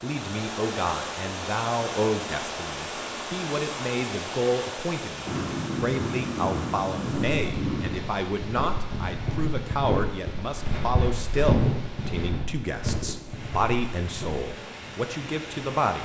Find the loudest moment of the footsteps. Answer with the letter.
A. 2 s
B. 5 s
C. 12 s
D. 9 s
C.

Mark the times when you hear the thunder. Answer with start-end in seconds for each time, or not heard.
5.2-8.0.